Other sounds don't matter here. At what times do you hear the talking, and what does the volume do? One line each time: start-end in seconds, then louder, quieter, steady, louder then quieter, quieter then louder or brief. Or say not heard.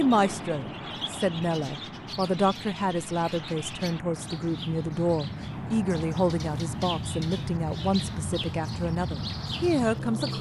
0.0-10.3 steady.